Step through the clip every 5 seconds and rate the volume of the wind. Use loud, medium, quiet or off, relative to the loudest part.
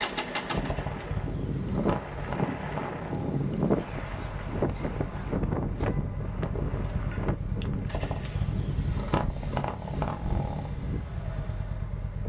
loud, loud, medium.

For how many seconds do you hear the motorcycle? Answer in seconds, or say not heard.
12 s.